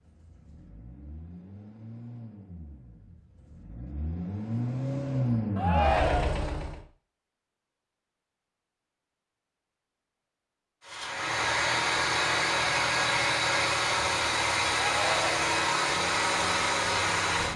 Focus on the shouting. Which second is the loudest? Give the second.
6 s.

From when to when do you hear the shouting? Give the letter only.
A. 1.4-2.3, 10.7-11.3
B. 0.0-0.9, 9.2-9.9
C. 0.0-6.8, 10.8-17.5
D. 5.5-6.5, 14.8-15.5
D.